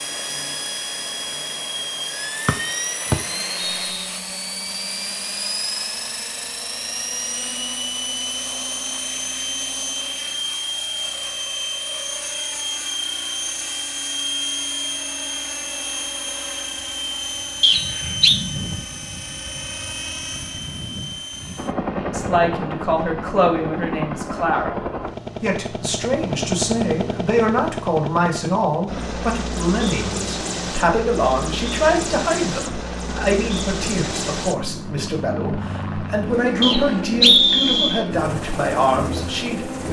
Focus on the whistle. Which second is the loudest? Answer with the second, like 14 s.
37 s.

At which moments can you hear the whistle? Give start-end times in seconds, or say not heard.
2.5-4.0, 17.6-18.4, 36.6-38.0.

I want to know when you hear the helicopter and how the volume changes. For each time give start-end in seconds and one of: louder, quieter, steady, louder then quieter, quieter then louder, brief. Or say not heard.
0.0-39.8 steady.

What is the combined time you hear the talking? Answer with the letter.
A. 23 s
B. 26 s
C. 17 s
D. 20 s
C.